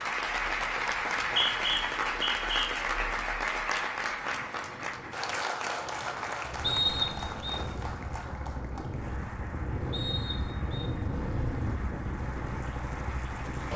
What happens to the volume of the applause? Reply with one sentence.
The loudness of the applause goes down.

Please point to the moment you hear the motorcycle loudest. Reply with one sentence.
The loudest moment of the motorcycle is at 11 seconds.